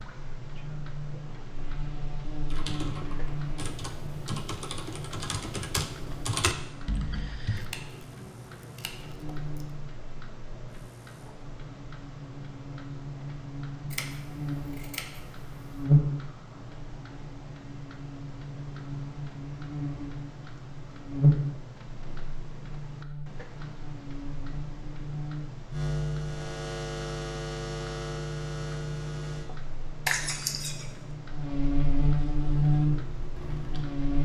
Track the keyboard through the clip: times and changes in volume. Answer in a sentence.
The keyboard can be heard from 2.5 to 7.7 s, getting louder; and briefly from 32.6 to 34.2 s.